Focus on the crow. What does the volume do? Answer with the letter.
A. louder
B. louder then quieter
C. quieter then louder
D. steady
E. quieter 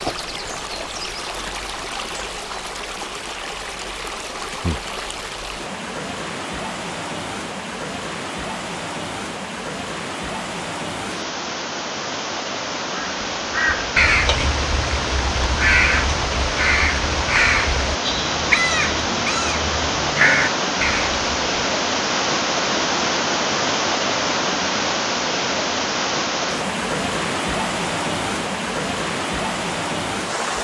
D.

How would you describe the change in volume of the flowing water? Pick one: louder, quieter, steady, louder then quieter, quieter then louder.
louder.